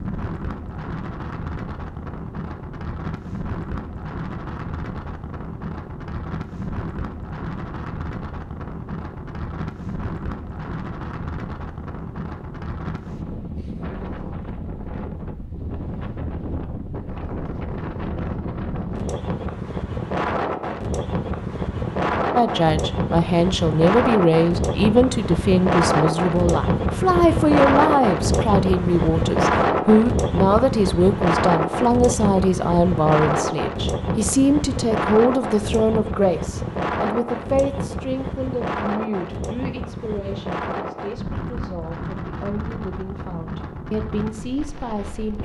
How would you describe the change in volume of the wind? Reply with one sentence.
The loudness of the wind goes up, then down.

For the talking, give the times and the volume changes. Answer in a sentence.
The talking can be heard from 22.4 to 45.3 s, getting quieter.